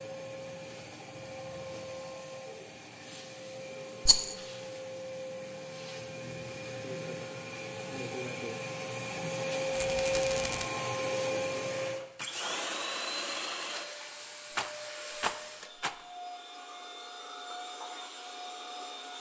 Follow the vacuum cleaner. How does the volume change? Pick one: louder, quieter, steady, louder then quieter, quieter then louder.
louder then quieter.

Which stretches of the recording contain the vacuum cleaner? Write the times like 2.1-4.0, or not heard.
0.0-19.1.